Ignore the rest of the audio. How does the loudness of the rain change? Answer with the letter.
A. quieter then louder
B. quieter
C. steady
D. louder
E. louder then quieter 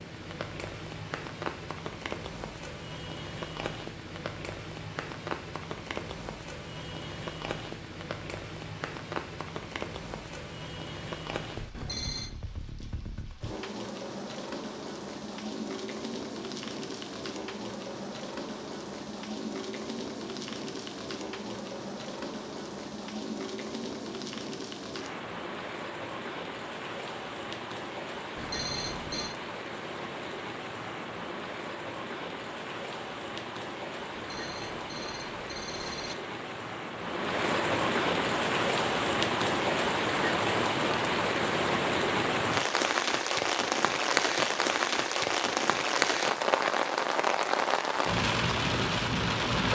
D.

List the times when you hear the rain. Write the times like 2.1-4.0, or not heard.
0.0-49.7.